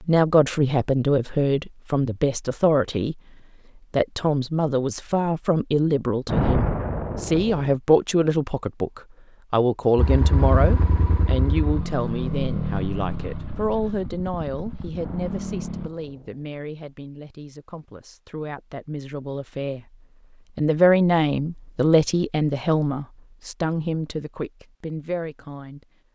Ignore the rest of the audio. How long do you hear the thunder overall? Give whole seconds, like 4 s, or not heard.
3 s.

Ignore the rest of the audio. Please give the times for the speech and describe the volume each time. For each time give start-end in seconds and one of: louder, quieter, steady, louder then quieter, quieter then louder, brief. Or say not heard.
0.0-25.9 quieter then louder.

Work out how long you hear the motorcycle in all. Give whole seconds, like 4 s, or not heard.
6 s.